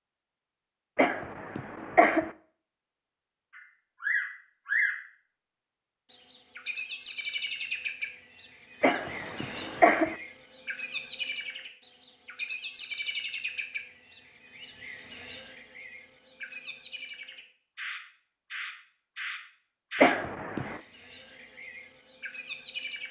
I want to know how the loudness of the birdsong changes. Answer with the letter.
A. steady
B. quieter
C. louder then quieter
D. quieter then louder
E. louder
B.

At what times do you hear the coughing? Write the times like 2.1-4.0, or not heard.
0.9-2.3, 8.8-10.2, 20.0-20.8.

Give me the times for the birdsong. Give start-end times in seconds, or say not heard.
3.5-23.0.